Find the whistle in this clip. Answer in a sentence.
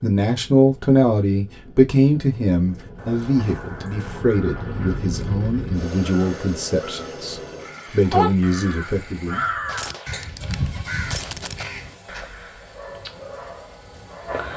You can't hear the whistle here.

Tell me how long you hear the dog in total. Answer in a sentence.
You can hear the dog for 2 seconds altogether.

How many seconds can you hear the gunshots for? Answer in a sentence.
The gunshots can be heard for 2 seconds in total.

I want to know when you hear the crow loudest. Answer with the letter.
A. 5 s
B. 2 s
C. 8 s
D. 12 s
C.